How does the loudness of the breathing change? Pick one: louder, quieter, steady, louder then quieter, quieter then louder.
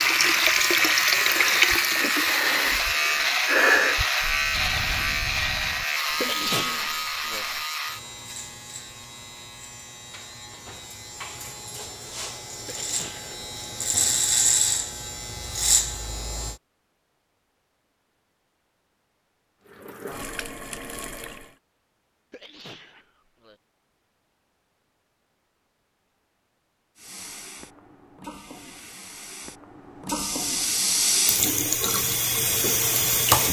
louder then quieter.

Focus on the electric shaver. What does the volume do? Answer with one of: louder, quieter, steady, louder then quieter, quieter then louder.
quieter then louder.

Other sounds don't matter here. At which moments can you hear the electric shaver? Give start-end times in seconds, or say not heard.
0.0-16.6.